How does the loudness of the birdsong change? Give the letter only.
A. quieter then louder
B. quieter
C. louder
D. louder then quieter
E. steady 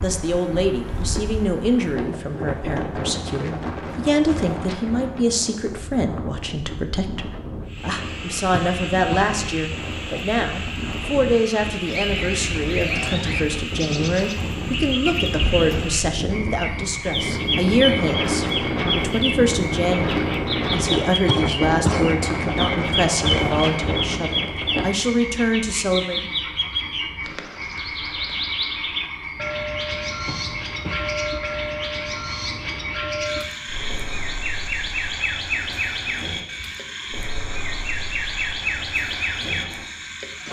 E.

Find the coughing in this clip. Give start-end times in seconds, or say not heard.
8.5-9.3, 21.2-22.1, 30.2-31.1.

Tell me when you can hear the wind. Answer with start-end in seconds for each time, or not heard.
0.0-24.9.